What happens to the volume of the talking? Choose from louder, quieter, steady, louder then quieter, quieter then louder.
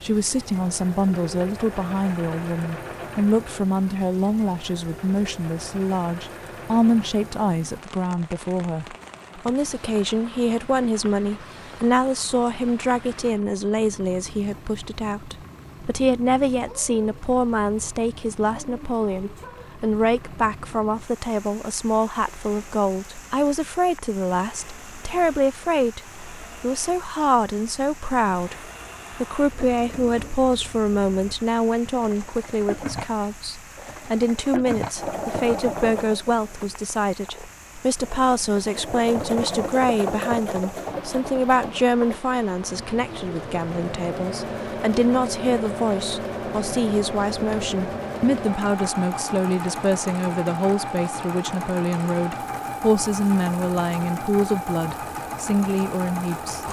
steady.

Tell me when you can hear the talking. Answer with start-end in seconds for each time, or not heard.
0.0-56.6.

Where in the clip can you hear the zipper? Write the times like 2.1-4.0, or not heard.
not heard.